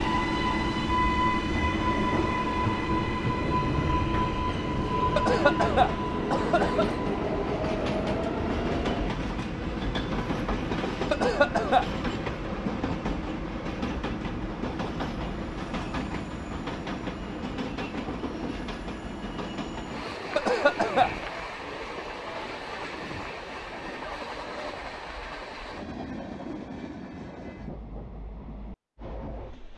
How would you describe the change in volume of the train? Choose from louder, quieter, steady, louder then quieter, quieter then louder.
quieter.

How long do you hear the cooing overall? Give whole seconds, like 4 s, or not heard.
not heard.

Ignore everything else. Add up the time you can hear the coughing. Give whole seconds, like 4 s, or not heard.
3 s.